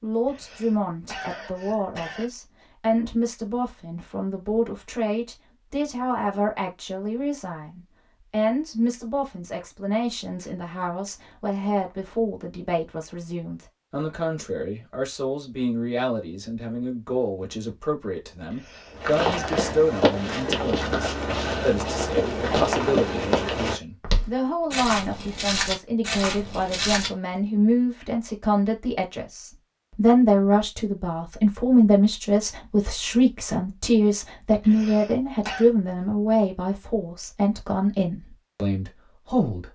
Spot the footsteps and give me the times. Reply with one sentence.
You can hear the footsteps from 18.9 to 27.1 s.